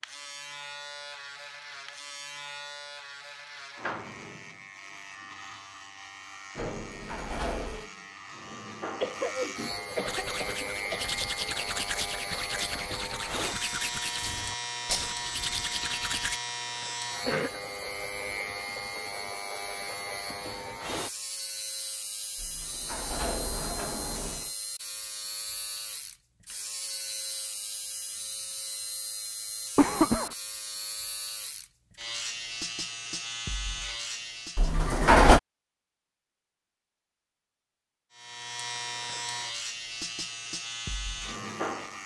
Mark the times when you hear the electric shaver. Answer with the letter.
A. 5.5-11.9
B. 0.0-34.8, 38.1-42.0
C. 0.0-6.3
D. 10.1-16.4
B.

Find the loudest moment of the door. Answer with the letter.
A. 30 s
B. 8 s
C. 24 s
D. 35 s
D.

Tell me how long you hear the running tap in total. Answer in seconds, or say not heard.
not heard.